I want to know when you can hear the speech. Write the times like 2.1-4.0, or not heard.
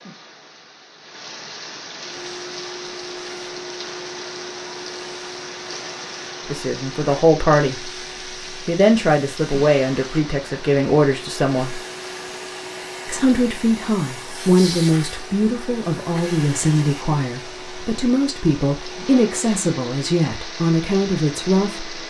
6.5-7.9, 8.5-11.8, 13.1-21.9.